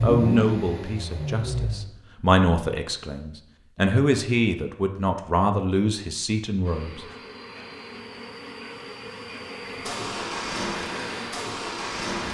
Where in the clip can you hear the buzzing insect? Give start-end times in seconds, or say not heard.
6.7-12.2.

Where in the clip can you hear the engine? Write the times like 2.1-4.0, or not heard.
0.0-1.9, 9.7-12.2.